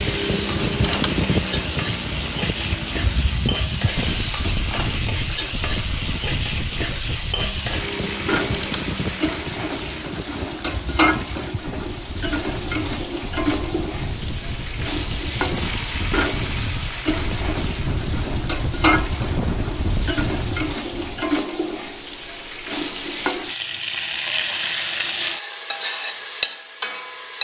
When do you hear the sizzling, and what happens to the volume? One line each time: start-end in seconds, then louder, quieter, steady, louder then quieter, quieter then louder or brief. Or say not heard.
0.0-27.3 steady.